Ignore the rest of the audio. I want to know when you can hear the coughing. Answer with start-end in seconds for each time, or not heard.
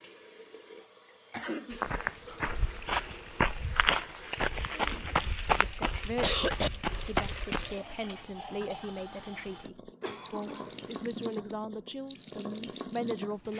1.3-1.8, 4.7-5.5, 6.2-6.7, 10.0-11.0.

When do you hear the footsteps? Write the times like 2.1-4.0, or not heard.
1.7-7.8.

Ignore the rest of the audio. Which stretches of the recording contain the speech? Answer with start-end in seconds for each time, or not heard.
5.5-13.5.